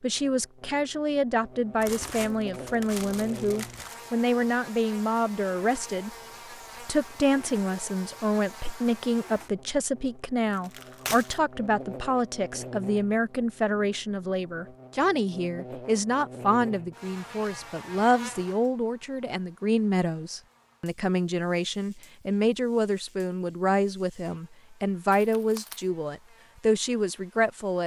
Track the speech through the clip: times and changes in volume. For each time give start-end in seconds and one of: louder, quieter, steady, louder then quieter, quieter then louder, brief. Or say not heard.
0.0-6.1 steady
6.8-27.8 steady.